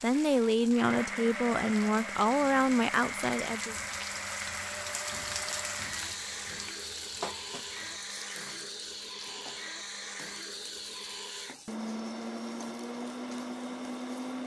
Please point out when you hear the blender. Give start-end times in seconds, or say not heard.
0.0-14.4.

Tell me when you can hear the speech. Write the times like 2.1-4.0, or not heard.
0.0-3.8.